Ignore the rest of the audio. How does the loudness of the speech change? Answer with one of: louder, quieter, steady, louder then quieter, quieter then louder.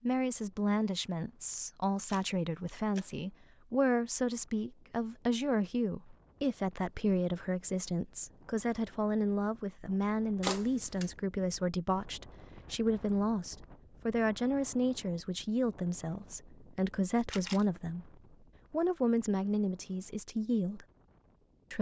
steady.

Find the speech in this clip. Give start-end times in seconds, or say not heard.
0.0-20.9.